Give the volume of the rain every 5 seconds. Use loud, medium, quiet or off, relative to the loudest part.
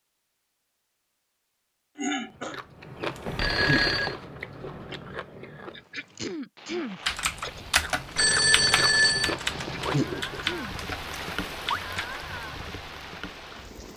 off, medium, loud.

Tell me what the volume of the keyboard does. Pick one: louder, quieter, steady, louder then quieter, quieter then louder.
quieter.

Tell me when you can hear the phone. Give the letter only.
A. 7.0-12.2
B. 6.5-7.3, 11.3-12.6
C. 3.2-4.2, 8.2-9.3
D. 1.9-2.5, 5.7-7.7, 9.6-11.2
C.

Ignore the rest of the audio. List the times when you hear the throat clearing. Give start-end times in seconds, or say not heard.
1.9-2.5, 5.7-7.7, 9.6-11.2.